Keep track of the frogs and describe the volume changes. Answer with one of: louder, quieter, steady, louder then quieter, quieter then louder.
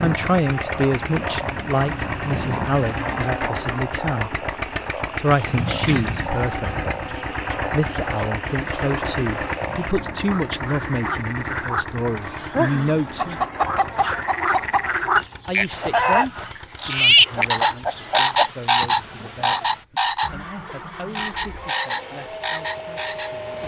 louder.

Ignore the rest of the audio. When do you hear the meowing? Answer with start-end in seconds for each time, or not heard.
5.5-6.3.